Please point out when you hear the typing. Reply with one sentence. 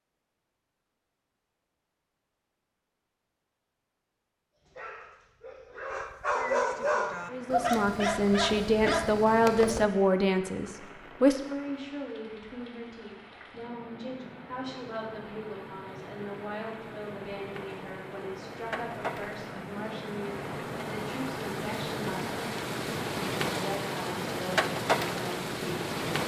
You can't hear the typing here.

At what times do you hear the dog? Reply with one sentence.
The dog can be heard from 4.5 to 9.8 s.